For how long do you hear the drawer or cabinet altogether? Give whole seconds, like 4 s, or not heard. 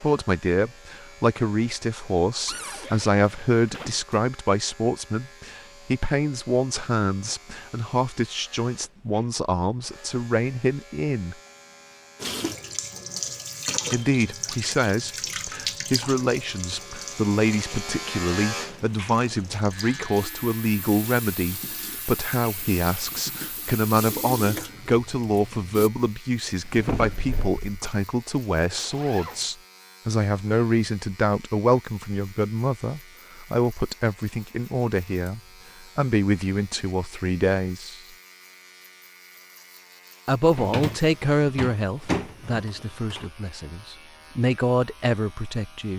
4 s.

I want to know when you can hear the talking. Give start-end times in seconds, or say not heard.
0.0-11.3, 13.9-38.0, 40.2-45.9.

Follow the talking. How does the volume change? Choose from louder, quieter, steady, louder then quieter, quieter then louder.
steady.